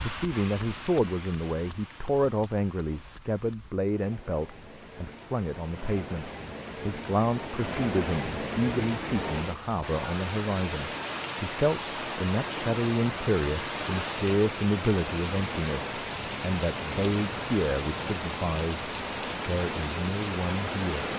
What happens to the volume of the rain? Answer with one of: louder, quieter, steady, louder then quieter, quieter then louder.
louder.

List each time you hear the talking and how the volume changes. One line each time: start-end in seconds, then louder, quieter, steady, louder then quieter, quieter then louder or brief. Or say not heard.
0.0-21.1 steady.